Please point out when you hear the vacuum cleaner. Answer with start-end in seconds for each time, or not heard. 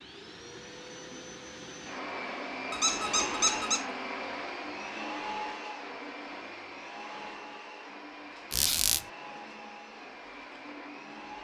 0.0-11.3.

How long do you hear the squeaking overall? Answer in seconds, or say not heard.
2 s.